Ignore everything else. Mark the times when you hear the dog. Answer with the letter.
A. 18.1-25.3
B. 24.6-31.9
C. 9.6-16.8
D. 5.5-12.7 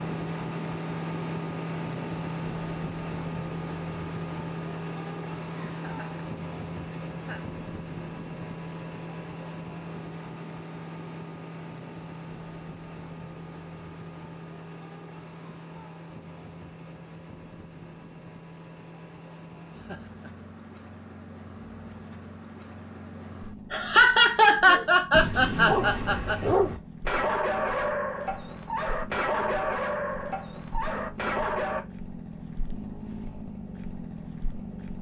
B.